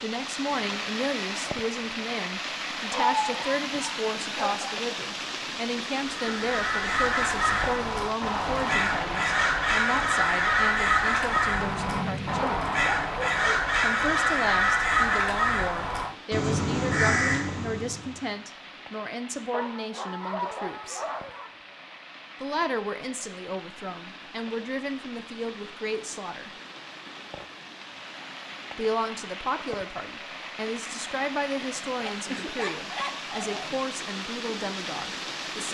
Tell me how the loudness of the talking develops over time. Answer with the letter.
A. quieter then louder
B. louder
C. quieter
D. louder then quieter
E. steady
E.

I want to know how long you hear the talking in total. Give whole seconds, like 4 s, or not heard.
31 s.